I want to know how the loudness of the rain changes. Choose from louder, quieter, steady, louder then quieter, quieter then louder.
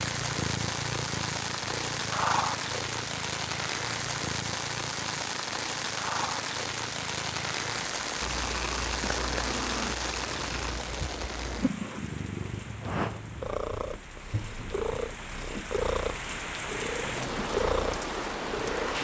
quieter then louder.